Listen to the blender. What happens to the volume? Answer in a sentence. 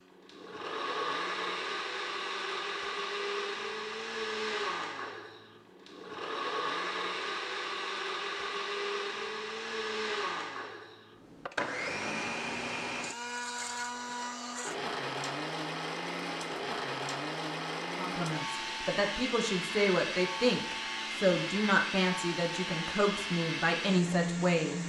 The loudness of the blender stays about the same.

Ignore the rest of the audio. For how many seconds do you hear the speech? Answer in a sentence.
You can hear the speech for 7 seconds altogether.